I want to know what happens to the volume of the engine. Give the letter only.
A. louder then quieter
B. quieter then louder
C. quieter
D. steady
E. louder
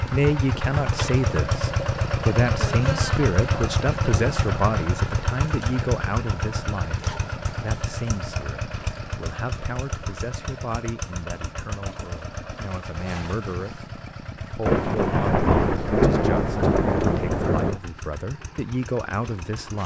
C.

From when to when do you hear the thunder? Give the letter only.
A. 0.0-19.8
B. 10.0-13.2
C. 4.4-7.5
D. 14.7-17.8
D.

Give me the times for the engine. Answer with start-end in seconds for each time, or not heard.
0.0-19.8.